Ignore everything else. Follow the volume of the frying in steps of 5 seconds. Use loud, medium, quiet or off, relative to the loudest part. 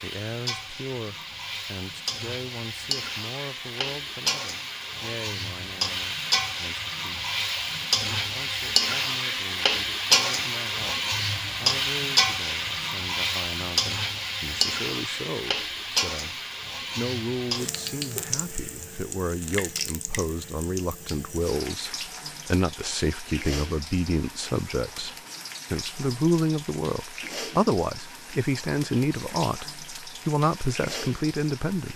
medium, loud, loud, medium, quiet, quiet, quiet.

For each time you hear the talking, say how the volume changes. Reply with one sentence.
You can hear the talking from 0.0 to 7.2 s, getting quieter; and from 8.2 to 31.9 s, getting louder.